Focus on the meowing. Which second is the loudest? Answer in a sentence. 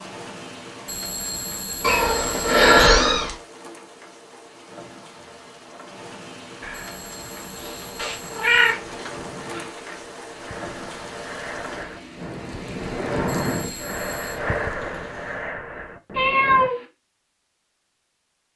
The loudest moment of the meowing is at 3 seconds.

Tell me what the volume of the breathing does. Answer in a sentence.
The volume of the breathing goes up.